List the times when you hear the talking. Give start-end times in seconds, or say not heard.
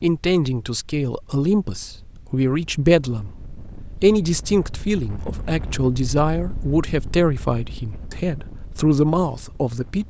0.0-10.0.